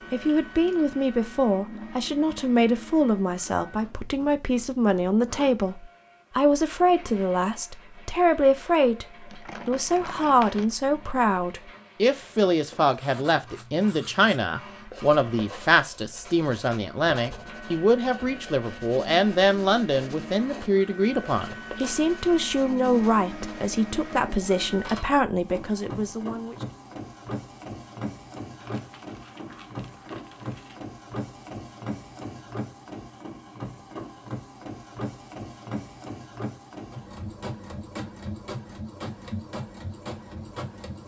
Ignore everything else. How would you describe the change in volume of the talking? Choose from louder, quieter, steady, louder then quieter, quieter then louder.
steady.